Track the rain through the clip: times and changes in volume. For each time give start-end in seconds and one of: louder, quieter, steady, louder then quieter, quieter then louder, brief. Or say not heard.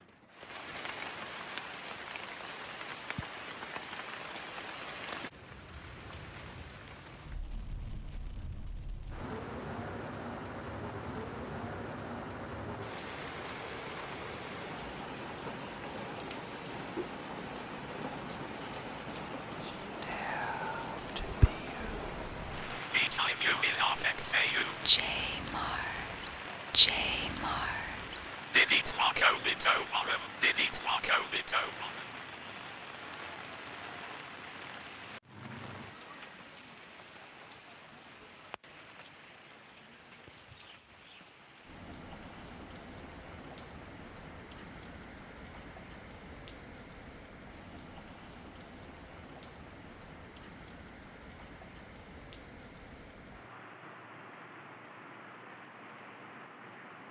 0.0-57.0 quieter.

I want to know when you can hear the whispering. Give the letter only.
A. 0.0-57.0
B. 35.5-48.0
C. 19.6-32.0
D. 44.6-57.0
C.